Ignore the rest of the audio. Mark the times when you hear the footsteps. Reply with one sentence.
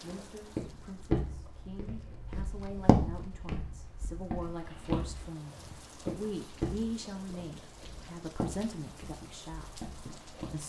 You can hear the footsteps from 0.1 to 10.6 s.